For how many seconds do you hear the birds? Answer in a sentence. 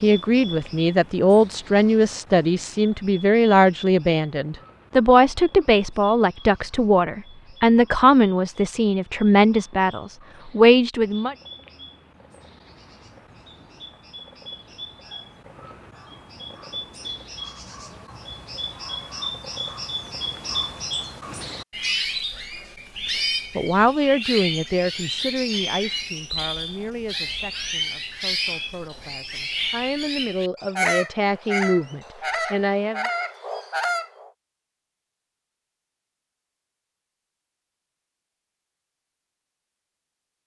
The birds can be heard for 34 seconds in total.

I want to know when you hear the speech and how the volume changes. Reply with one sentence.
You can hear the speech from 0.0 to 11.3 s, at a steady volume; and from 23.6 to 33.0 s, getting quieter then louder.